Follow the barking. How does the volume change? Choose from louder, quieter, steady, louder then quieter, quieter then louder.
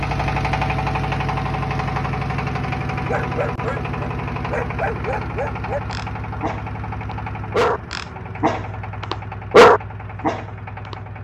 louder.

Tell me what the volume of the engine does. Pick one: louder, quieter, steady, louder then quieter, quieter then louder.
quieter.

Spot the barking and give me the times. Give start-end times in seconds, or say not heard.
3.0-10.9.